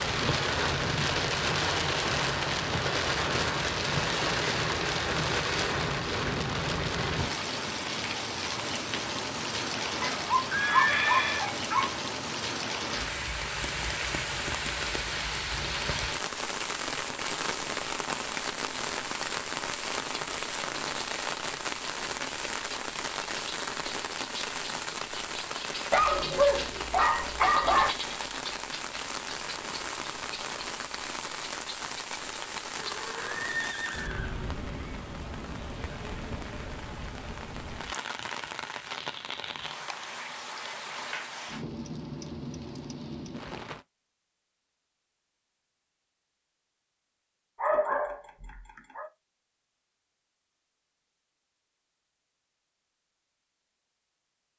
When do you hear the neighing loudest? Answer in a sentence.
The volume of the neighing peaks at 11 seconds.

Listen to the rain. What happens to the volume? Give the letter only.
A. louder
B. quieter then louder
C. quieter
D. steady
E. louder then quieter
C.